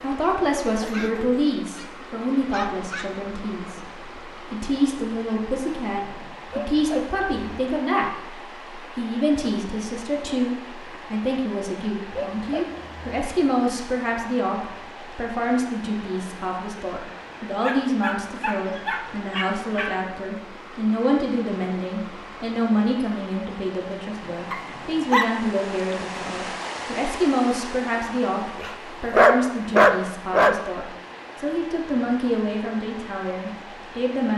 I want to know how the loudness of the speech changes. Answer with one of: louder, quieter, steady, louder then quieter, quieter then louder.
steady.